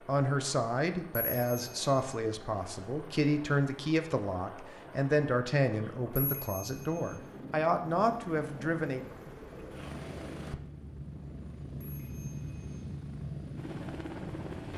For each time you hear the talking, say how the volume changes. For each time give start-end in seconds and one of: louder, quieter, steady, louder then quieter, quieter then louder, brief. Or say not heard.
0.1-9.1 steady.